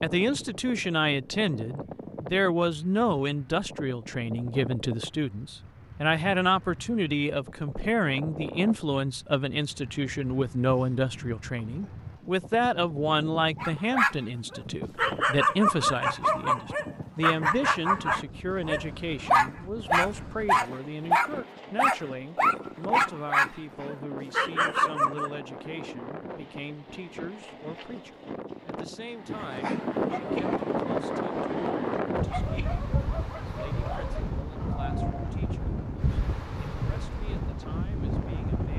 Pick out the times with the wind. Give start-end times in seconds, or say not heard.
0.0-38.7.